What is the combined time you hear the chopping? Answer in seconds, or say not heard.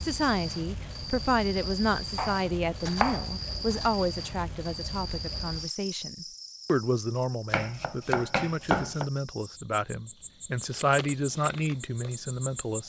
3 s.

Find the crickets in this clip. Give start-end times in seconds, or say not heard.
0.0-12.8.